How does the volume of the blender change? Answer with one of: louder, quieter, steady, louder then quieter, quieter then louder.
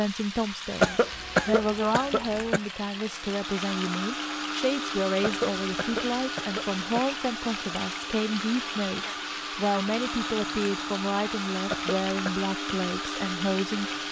steady.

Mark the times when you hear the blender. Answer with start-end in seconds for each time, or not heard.
3.1-14.0.